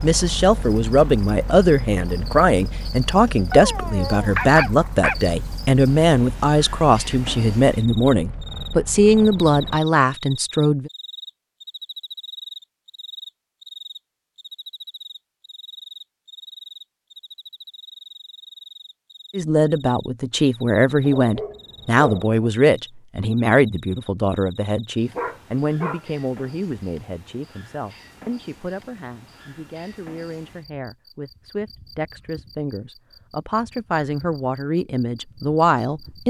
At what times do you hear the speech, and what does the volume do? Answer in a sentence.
You can hear the speech from 0.0 to 10.9 s, at a steady volume; and from 19.3 to 36.2 s, getting quieter then louder.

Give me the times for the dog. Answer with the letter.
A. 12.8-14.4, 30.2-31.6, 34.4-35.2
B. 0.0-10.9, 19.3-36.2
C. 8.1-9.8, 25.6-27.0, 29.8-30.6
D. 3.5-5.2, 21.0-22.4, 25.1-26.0
D.